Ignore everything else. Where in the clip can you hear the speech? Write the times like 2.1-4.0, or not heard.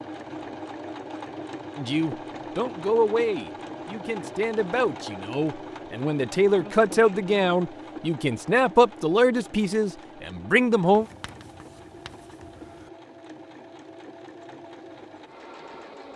1.8-11.1.